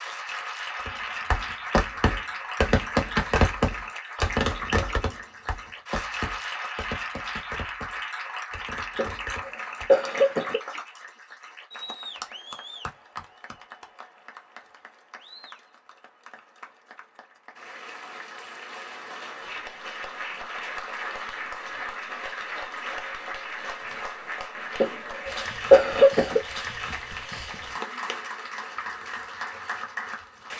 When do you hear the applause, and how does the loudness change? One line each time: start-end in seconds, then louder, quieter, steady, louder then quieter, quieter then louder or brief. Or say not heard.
0.0-30.5 quieter then louder.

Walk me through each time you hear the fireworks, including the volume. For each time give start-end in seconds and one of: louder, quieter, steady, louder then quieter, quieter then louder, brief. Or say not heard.
0.8-9.9 quieter.